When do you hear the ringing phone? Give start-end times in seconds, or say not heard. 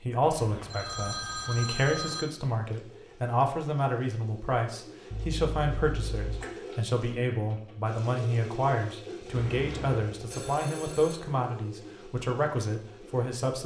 0.2-2.2, 5.1-6.5, 9.3-11.2.